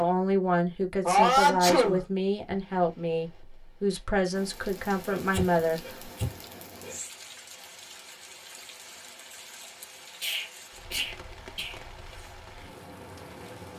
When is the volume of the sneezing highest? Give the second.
1 s.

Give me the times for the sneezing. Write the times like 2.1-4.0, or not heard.
1.0-2.0, 5.1-7.0, 10.2-11.8.